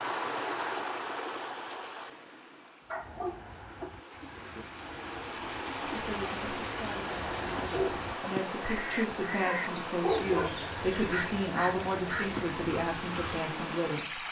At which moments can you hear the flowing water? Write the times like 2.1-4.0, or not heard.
0.0-14.2.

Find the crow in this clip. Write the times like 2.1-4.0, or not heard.
2.8-13.4.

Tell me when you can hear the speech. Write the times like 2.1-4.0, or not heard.
5.3-14.2.